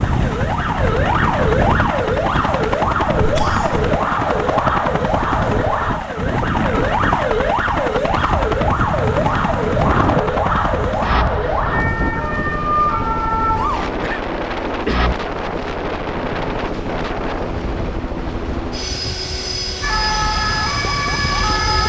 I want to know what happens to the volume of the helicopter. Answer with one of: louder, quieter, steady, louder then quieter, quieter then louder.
steady.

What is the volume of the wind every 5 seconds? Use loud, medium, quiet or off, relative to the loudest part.
loud, loud, loud, loud, medium.